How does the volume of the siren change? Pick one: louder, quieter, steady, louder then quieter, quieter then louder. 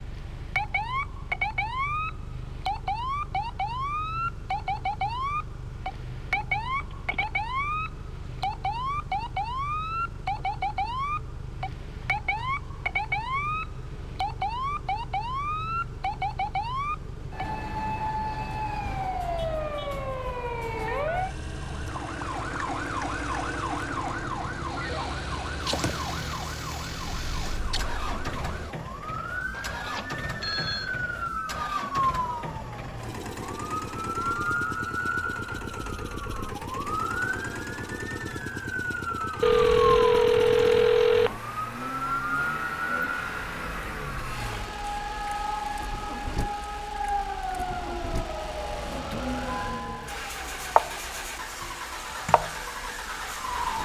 steady.